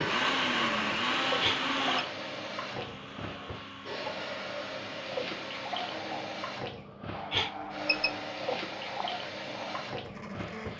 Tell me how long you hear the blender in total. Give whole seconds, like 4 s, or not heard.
11 s.